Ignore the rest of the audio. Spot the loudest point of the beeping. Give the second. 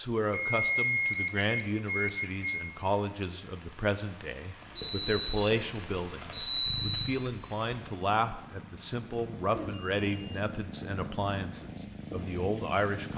7 s.